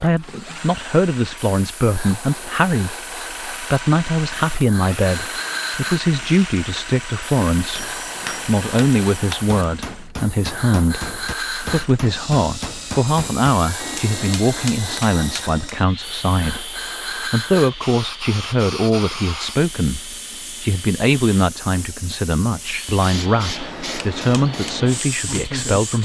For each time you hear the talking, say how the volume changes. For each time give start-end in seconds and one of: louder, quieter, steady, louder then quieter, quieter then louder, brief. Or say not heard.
0.0-26.0 steady.